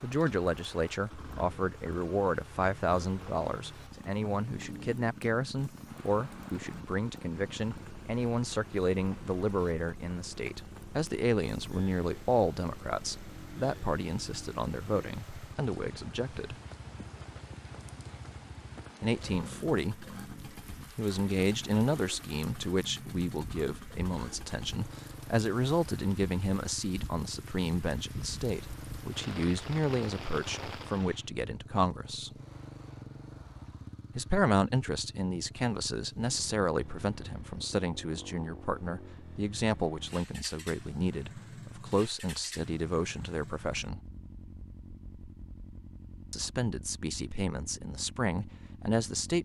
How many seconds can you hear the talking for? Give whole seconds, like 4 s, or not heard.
42 s.